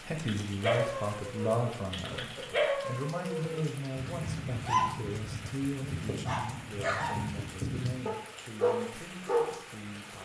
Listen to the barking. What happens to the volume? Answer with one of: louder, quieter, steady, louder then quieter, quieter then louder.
steady.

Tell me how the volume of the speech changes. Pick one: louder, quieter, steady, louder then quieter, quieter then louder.
quieter.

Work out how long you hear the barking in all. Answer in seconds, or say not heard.
9 s.